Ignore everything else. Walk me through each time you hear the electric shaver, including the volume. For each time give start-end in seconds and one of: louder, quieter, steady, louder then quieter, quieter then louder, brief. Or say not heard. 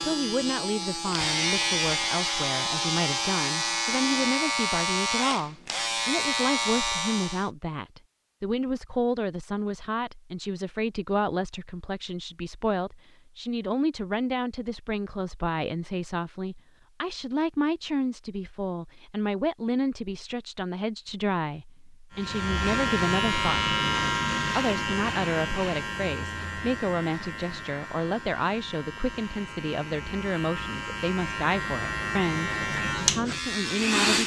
0.0-7.5 steady
22.1-34.2 quieter then louder.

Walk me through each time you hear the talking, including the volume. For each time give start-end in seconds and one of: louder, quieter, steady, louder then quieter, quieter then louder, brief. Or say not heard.
0.0-34.2 steady.